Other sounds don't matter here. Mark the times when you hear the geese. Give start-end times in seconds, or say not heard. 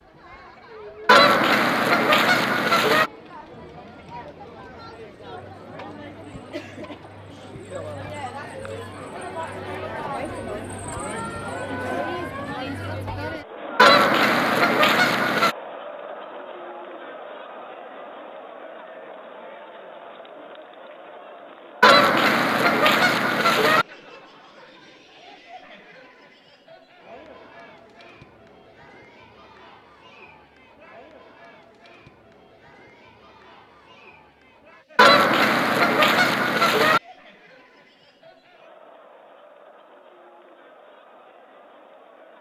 1.1-3.1, 13.8-15.6, 21.8-23.9, 35.0-37.0.